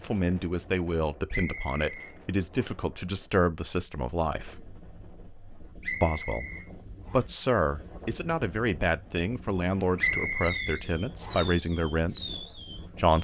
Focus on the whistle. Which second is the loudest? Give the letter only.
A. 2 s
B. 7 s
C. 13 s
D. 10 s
D.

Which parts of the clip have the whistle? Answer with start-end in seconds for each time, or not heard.
1.3-2.7, 5.8-7.2, 9.9-11.5.